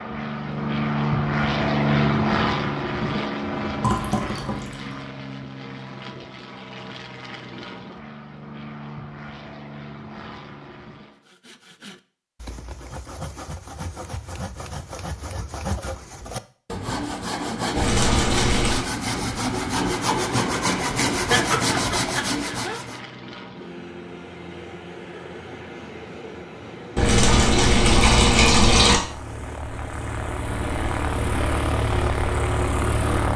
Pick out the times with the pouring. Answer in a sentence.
You can hear the pouring from 3.8 to 5.0 s, from 17.8 to 18.9 s and from 26.9 to 29.0 s.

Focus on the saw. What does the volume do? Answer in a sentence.
The loudness of the saw goes up.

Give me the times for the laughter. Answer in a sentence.
You can hear the laughter from 21.2 to 22.8 s.